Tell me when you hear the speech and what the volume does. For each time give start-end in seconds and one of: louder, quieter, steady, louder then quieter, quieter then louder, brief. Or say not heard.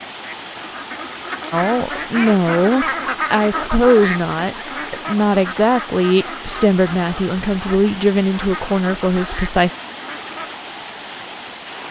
1.5-9.7 steady.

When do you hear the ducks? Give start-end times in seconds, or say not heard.
0.2-10.6.